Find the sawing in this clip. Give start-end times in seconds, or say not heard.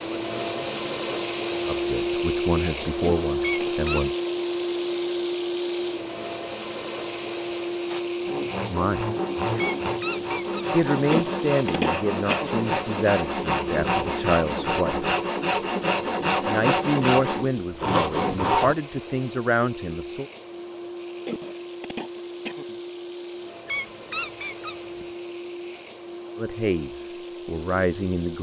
7.8-18.8.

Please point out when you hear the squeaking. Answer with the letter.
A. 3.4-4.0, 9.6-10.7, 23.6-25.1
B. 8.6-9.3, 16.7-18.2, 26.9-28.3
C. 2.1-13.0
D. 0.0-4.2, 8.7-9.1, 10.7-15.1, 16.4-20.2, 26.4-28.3
A.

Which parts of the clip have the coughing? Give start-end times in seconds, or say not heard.
3.0-3.7, 11.1-12.6, 21.2-22.8.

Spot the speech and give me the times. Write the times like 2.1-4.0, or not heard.
0.0-4.2, 8.7-9.1, 10.7-15.1, 16.4-20.2, 26.4-28.3.